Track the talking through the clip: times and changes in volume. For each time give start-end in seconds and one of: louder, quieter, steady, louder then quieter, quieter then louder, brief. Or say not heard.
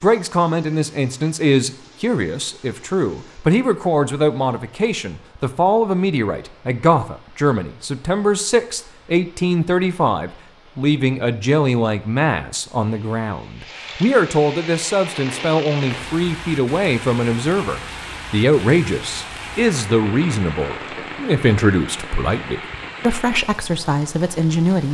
0.0-24.8 steady.